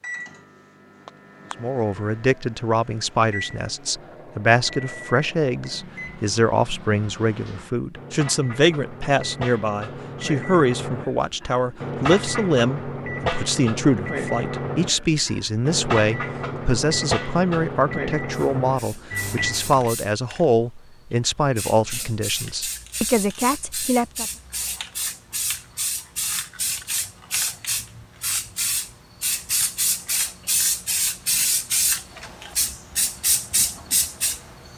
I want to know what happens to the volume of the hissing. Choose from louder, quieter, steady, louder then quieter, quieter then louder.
louder.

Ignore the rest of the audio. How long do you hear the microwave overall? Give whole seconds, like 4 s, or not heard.
20 s.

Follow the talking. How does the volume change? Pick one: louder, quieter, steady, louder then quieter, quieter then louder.
steady.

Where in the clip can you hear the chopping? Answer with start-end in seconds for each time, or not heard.
not heard.